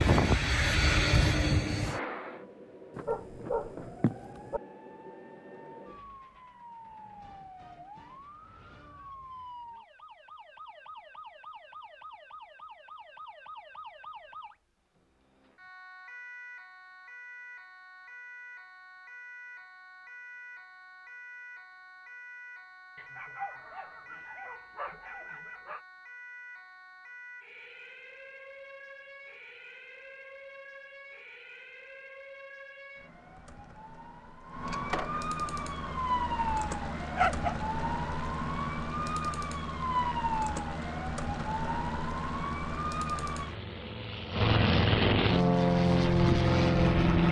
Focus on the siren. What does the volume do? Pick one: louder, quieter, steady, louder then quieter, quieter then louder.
louder.